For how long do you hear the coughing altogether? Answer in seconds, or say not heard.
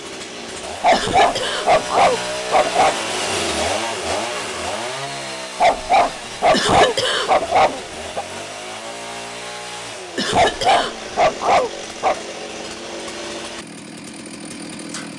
3 s.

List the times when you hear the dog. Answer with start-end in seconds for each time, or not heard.
0.8-3.0, 5.5-8.2, 10.3-12.2.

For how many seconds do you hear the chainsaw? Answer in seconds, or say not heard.
15 s.